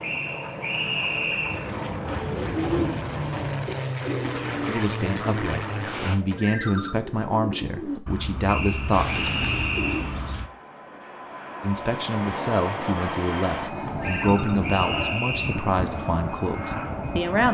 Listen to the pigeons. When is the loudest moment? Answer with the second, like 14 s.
3 s.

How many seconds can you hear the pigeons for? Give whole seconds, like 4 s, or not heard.
9 s.